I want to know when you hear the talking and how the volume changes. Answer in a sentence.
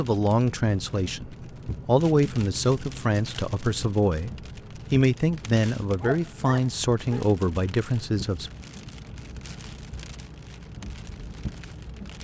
You can hear the talking from 0.0 to 8.5 s, at a steady volume.